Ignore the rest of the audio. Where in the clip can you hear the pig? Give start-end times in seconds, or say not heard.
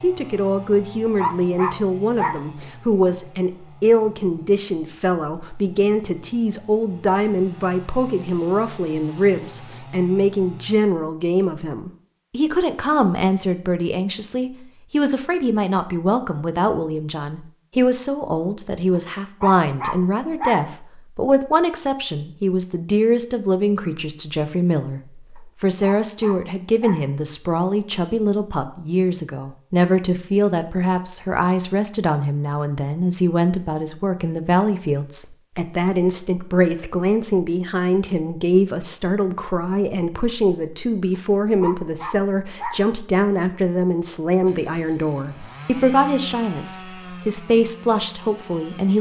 not heard.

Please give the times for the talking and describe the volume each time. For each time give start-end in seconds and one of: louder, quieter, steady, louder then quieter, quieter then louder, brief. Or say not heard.
0.0-48.9 steady.